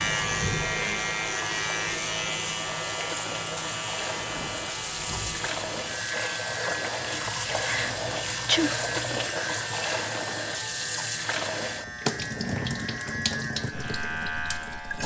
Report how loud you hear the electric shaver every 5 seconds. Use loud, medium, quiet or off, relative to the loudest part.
loud, medium, medium.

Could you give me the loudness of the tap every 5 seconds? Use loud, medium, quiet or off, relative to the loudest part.
medium, loud, loud.